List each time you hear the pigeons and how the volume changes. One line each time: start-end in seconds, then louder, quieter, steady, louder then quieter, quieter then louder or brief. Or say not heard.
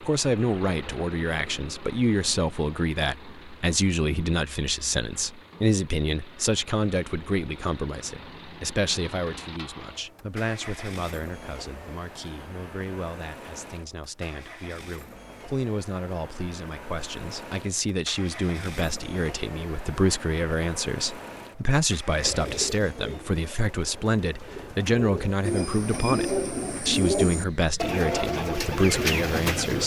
22.2-29.8 louder.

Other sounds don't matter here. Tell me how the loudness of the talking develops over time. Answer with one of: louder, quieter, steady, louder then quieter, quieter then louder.
quieter then louder.